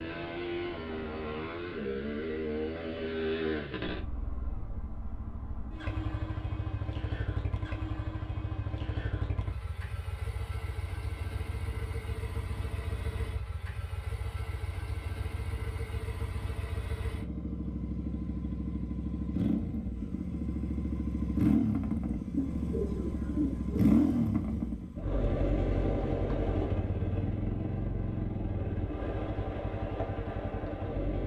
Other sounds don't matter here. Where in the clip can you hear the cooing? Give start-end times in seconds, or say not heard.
22.4-24.0.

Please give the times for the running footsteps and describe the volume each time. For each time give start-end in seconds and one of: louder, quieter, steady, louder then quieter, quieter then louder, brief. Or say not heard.
not heard.